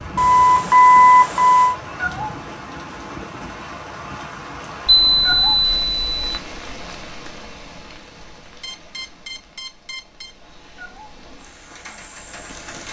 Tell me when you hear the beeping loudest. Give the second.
1 s.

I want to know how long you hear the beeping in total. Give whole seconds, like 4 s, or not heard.
5 s.